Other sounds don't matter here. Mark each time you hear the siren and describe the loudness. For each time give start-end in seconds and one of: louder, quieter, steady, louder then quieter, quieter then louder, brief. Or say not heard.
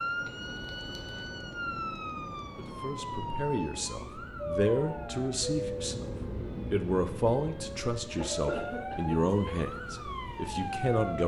0.0-11.2 quieter then louder.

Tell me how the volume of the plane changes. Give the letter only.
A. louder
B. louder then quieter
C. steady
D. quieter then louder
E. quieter
B.